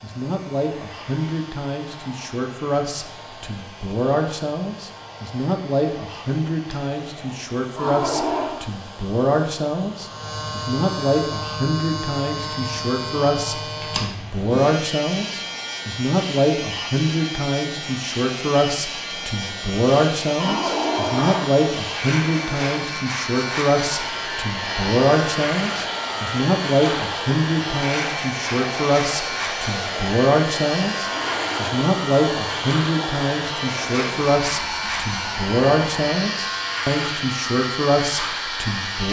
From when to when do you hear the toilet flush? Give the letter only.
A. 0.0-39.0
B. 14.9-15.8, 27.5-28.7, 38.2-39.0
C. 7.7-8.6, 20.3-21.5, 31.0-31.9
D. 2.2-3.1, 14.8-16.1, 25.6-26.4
C.